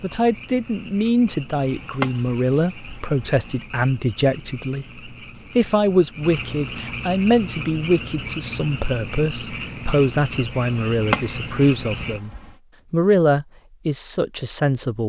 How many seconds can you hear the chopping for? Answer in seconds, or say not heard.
4 s.